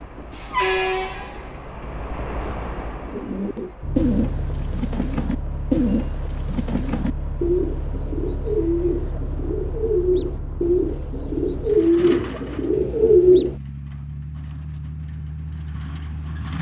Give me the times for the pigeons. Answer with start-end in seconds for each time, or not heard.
3.0-13.6.